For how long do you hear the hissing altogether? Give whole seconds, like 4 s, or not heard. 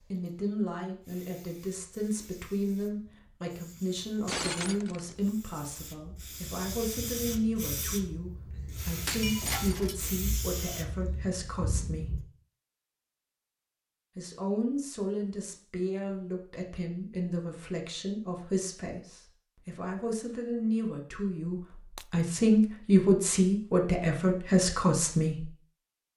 12 s.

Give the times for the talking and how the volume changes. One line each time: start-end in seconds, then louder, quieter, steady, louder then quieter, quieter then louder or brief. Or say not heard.
0.1-12.2 steady
14.2-25.4 louder.